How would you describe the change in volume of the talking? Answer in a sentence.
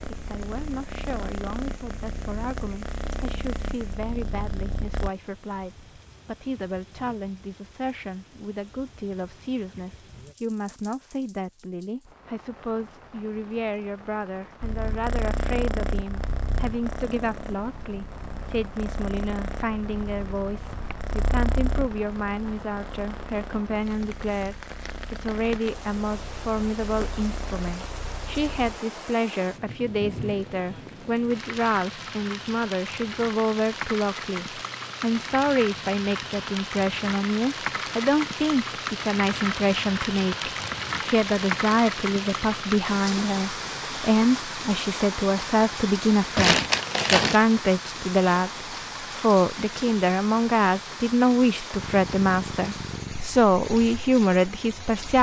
The loudness of the talking goes up.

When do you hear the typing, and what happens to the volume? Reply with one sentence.
The typing can't be heard in this clip.